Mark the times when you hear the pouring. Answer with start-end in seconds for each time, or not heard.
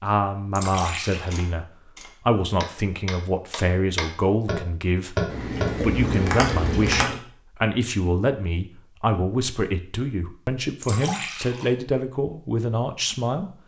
0.6-1.4, 5.2-7.2, 10.8-11.7.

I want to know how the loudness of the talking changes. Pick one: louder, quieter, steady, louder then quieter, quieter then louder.
steady.